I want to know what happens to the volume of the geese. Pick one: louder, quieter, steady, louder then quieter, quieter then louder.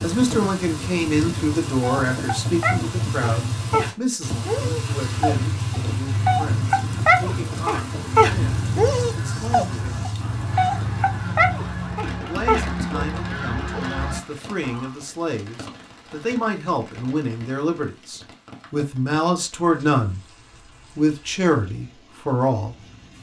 louder.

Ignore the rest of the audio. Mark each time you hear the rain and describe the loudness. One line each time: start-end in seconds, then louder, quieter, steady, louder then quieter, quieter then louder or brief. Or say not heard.
0.0-23.1 quieter.